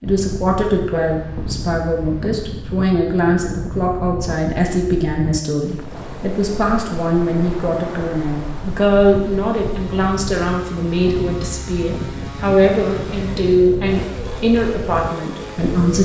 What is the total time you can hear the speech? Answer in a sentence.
You can hear the speech for 16 seconds altogether.